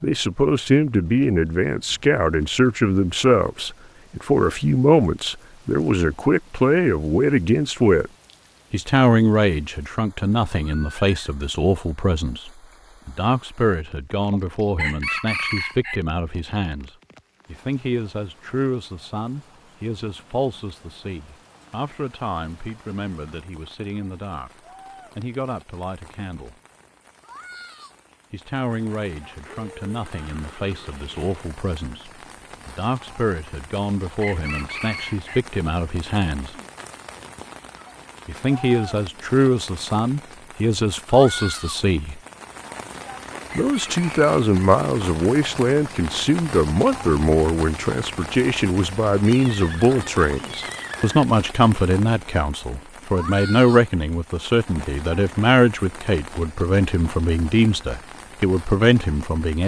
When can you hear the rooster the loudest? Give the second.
15 s.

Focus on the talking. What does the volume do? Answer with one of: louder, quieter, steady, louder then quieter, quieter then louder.
quieter then louder.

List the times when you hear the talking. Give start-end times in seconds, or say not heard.
0.0-8.1, 8.7-26.6, 28.3-36.5, 38.2-42.2, 43.5-59.6.